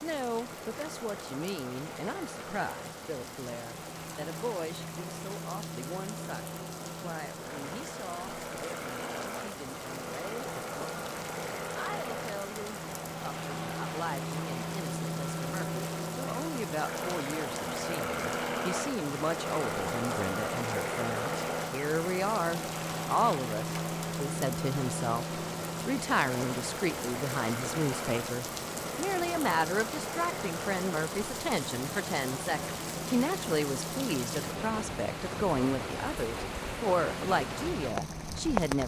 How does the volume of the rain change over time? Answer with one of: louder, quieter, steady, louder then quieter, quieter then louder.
louder.